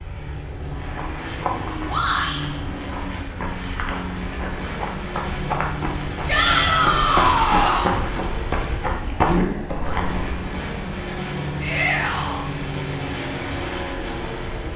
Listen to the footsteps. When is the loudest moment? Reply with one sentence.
The loudest moment of the footsteps is at 9 seconds.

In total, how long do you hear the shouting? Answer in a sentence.
You can hear the shouting for 3 seconds altogether.